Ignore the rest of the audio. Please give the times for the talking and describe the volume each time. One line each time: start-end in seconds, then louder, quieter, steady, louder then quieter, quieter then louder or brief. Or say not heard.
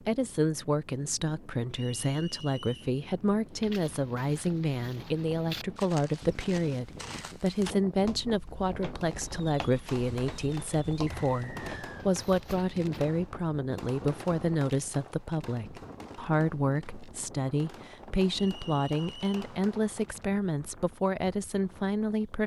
0.1-22.4 steady.